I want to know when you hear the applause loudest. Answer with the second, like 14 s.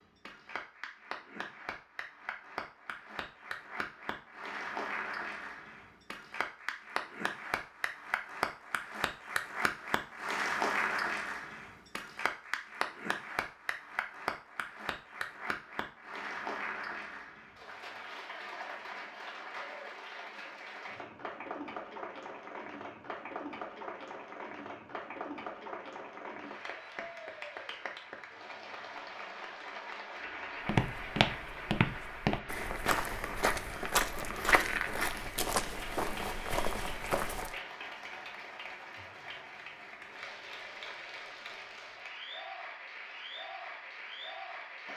11 s.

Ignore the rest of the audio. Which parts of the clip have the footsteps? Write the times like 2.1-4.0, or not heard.
30.6-37.5.